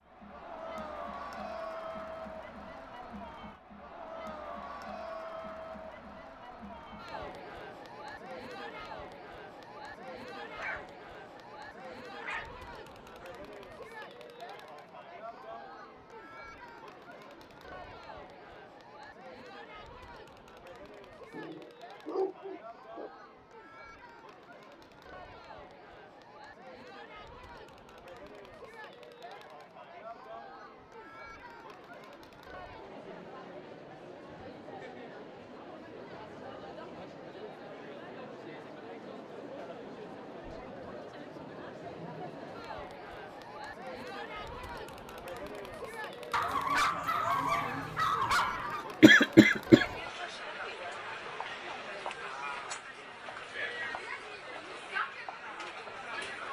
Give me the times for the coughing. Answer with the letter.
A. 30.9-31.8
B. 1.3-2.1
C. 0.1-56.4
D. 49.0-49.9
D.